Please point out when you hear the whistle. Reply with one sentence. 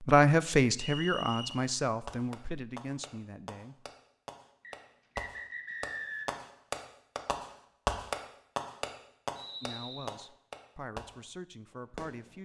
The whistle can be heard from 0.8 to 1.6 s, from 4.6 to 6.5 s and from 9.3 to 10.2 s.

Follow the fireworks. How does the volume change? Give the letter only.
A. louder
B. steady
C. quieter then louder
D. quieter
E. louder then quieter
E.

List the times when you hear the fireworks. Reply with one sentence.
You can hear the fireworks from 1.5 to 12.3 s.